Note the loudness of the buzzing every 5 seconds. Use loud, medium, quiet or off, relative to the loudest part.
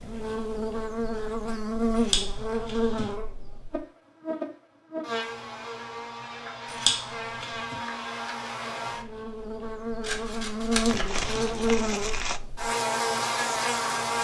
loud, medium, loud.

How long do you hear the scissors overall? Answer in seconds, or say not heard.
4 s.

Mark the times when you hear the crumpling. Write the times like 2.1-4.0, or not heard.
10.8-12.4.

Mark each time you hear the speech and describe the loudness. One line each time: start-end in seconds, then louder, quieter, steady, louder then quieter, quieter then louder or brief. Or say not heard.
not heard.